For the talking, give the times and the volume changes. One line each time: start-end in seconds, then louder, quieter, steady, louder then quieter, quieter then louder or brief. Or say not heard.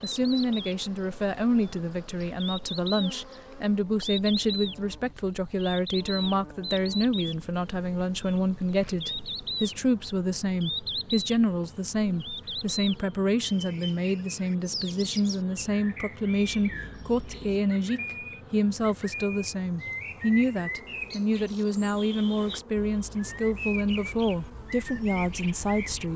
0.0-26.1 steady.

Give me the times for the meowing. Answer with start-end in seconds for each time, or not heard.
not heard.